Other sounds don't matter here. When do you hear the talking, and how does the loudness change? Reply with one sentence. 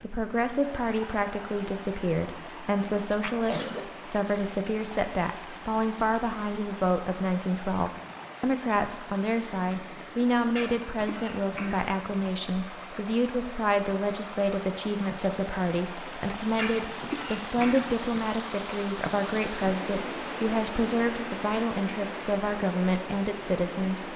You can hear the talking from 0.0 to 24.1 s, at a steady volume.